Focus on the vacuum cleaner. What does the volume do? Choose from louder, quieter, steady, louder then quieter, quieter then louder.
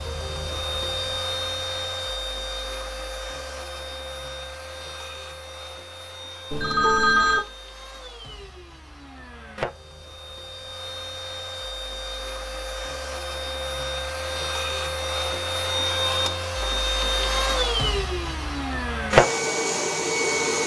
quieter then louder.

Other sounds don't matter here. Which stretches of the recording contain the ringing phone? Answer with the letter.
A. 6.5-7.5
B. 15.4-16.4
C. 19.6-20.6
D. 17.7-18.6
A.